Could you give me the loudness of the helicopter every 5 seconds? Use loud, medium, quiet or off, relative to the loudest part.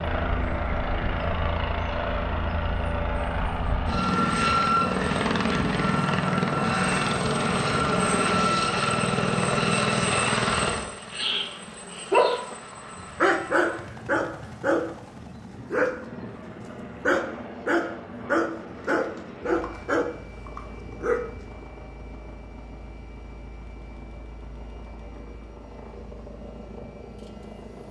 loud, loud, medium, quiet, quiet, quiet.